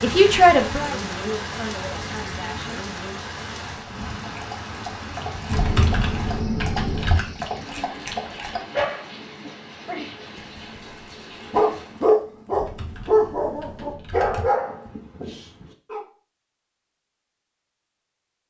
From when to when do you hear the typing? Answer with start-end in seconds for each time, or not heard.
5.5-7.2, 12.5-14.5.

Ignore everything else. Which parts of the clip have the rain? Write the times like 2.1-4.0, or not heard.
0.0-12.1.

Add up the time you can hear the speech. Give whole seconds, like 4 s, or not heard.
3 s.